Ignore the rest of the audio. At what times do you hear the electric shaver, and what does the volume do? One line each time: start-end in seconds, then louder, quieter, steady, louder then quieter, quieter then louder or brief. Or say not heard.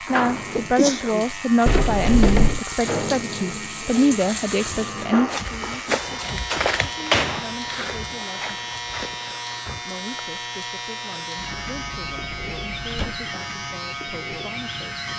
0.0-15.1 steady.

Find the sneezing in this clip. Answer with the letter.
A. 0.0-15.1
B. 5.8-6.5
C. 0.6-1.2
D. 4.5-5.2
C.